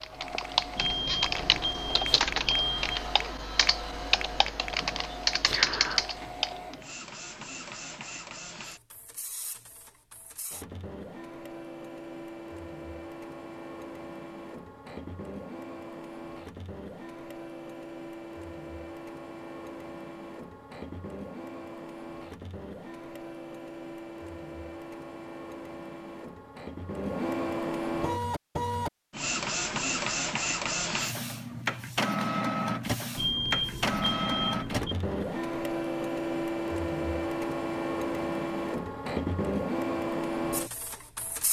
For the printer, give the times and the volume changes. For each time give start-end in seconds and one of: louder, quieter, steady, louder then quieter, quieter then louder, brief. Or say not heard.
0.0-41.4 louder.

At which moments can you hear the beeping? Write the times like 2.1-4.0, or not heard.
0.8-3.0, 33.1-35.0.